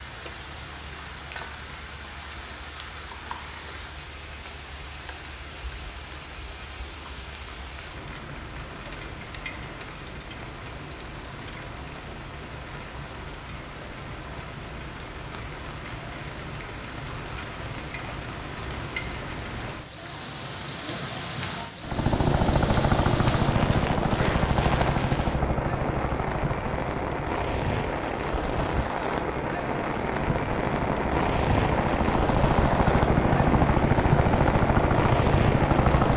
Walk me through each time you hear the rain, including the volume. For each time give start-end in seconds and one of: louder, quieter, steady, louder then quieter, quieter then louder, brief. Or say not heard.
0.0-36.1 louder.